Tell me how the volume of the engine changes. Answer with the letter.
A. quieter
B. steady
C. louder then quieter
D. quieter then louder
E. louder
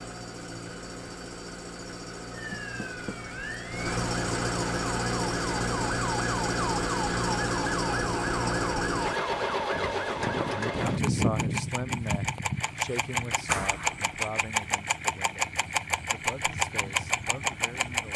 E.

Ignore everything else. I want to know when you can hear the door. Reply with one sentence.
The door can be heard from 2.5 to 3.2 s and from 13.4 to 14.1 s.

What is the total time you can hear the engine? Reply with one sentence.
The engine can be heard for 18 seconds in total.